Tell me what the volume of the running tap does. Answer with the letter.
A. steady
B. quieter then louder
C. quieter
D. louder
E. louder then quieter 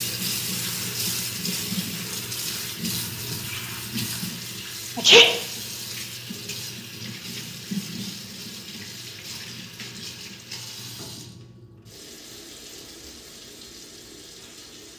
C.